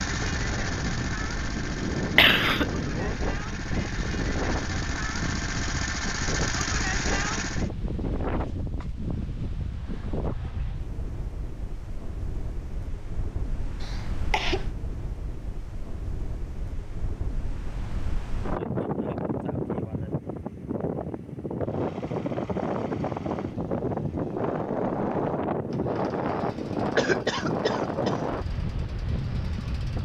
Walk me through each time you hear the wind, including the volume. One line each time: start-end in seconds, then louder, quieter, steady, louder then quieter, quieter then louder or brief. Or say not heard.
0.0-30.0 quieter then louder.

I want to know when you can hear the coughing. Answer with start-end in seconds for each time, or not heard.
2.1-2.6, 13.8-14.7, 26.9-28.2.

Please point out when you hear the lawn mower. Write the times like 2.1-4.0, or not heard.
0.0-7.7, 21.6-30.0.